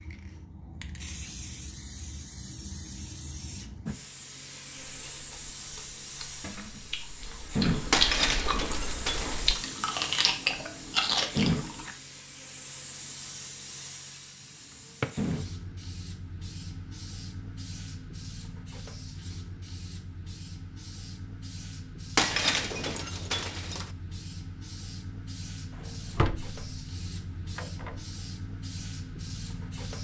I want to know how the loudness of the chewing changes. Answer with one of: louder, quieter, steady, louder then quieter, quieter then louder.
louder.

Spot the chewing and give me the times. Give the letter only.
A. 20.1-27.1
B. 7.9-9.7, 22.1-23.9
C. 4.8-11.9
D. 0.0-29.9
C.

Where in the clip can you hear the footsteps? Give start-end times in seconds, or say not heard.
not heard.